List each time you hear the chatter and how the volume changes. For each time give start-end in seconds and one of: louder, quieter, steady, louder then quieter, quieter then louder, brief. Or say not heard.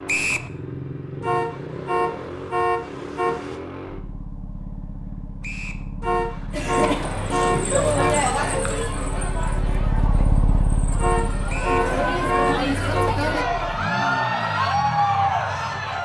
6.5-15.9 quieter then louder.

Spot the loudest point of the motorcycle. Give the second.
10 s.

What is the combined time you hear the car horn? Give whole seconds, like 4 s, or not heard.
7 s.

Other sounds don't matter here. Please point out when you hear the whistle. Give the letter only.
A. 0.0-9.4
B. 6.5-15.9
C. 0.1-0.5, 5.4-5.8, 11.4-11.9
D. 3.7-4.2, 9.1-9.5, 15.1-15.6
C.